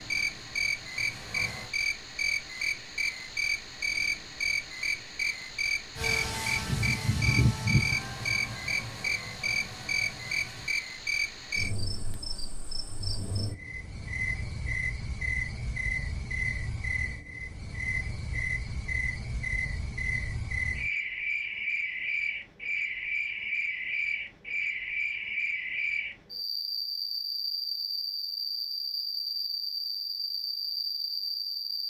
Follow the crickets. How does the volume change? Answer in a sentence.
The loudness of the crickets stays about the same.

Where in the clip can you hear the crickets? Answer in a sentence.
You can hear the crickets from 0.0 to 31.8 s.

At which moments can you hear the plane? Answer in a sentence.
The plane can be heard from 0.2 to 1.7 s and from 6.0 to 10.8 s.